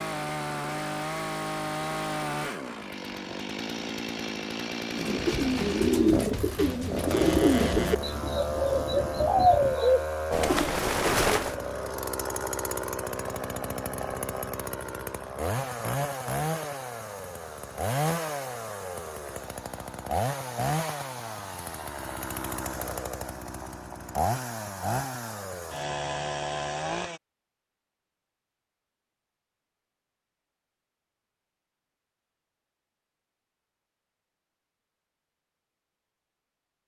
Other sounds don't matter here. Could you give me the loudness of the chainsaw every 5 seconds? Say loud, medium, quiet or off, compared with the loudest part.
loud, loud, loud, loud, loud, loud, off, off.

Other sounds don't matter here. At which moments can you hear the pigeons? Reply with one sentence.
The pigeons can be heard from 4.9 to 11.6 s.